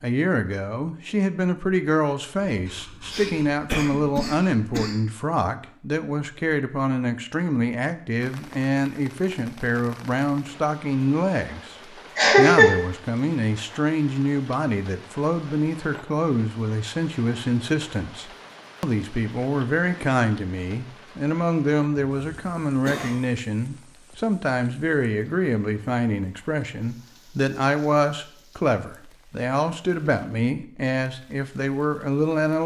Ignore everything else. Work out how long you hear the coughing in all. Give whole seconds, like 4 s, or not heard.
4 s.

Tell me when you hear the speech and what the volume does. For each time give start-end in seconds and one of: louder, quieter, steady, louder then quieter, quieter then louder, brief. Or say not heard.
0.0-11.8 steady
12.3-32.6 steady.